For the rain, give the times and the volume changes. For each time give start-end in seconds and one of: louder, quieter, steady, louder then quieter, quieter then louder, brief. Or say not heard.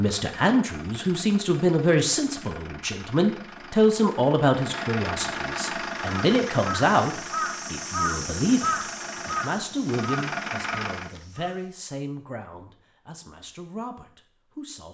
not heard.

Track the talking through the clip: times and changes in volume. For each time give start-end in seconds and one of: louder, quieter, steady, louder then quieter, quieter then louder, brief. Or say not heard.
0.0-14.8 quieter.